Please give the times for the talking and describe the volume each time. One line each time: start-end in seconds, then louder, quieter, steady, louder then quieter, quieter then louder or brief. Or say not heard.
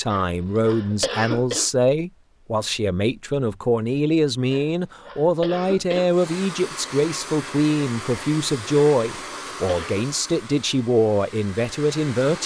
0.0-12.4 steady.